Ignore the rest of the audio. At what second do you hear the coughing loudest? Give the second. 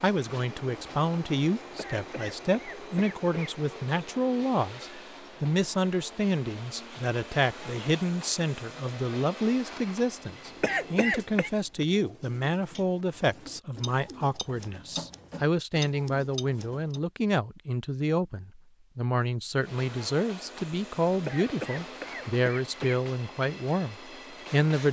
11 s.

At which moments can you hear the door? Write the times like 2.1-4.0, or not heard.
not heard.